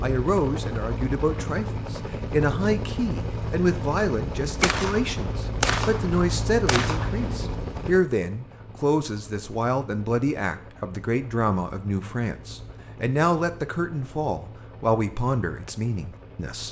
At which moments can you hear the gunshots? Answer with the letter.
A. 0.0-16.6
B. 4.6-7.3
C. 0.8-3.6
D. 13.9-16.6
B.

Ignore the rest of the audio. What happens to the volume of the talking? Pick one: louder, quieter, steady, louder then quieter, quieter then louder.
steady.